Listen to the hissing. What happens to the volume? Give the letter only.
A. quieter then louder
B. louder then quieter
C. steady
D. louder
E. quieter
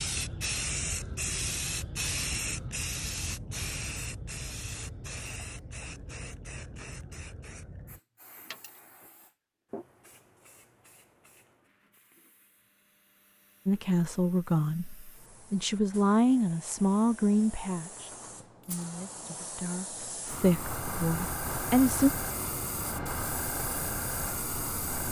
A.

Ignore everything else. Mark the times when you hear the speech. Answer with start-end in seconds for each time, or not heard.
13.7-22.1.